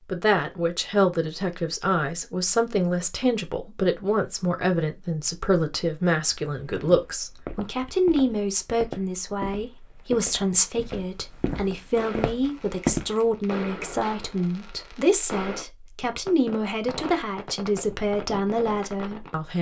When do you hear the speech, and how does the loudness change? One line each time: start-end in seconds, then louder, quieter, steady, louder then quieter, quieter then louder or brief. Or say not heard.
0.1-19.5 steady.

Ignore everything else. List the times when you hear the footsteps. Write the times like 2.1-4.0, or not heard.
6.2-13.2.